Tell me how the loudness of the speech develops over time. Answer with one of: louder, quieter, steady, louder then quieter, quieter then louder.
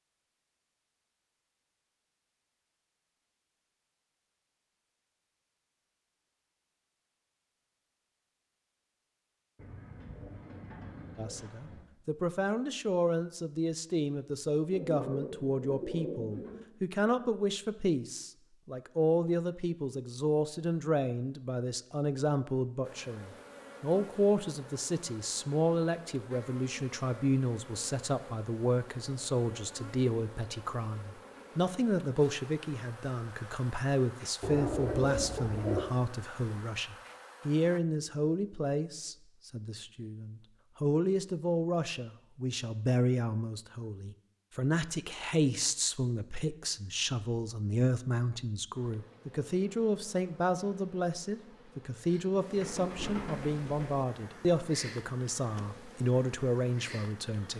steady.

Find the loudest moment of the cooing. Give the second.
35 s.